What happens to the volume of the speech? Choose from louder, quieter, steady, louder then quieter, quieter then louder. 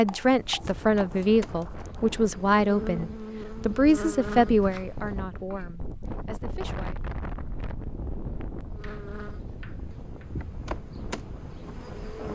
quieter.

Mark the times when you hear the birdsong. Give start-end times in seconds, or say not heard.
not heard.